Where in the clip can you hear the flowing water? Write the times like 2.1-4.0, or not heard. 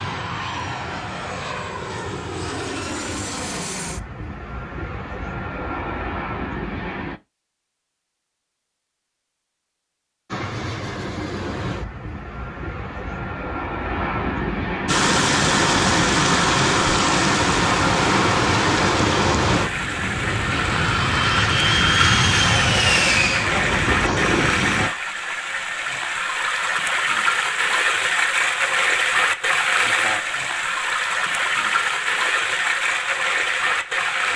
14.8-34.3.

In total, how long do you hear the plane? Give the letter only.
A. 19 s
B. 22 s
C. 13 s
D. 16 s
B.